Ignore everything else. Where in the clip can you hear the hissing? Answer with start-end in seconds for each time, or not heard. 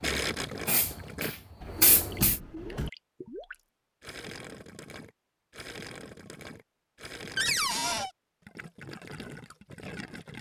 0.0-2.4.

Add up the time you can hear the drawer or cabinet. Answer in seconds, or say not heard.
2 s.